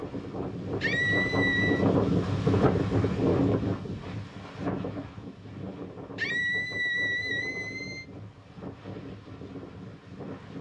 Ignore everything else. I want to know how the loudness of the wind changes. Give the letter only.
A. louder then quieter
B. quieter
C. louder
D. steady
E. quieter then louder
B.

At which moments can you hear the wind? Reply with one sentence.
You can hear the wind from 0.0 to 10.5 s.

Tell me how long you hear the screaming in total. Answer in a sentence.
You can hear the screaming for 3 seconds altogether.